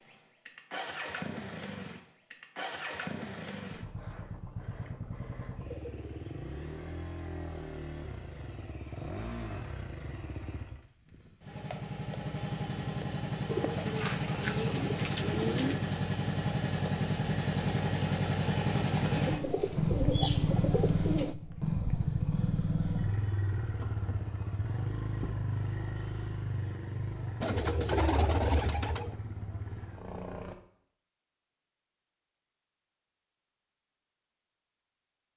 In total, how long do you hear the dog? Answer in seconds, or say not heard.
not heard.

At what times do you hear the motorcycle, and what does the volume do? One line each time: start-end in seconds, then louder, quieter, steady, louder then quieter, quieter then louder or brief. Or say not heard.
0.0-30.6 louder then quieter.